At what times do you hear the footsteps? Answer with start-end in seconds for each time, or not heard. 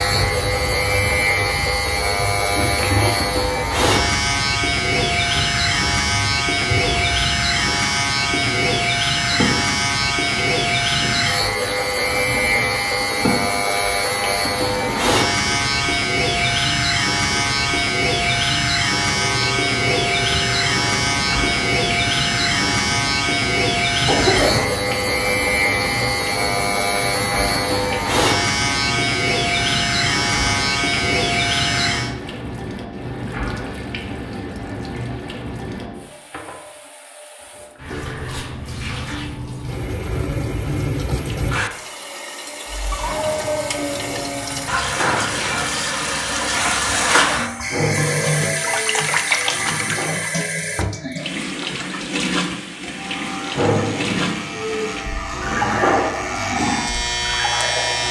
not heard.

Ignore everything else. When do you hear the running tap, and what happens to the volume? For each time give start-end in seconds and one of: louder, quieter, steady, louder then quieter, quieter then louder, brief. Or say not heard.
0.0-58.0 louder.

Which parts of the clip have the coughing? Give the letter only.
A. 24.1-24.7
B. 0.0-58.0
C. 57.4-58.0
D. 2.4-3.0
A.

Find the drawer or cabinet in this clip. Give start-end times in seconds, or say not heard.
not heard.